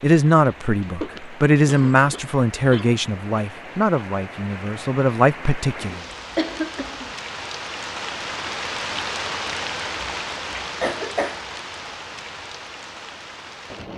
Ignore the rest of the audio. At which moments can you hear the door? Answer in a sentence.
The door can't be heard in this clip.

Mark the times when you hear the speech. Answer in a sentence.
You can hear the speech from 0.0 to 6.0 s.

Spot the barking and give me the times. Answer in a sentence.
You can't hear the barking here.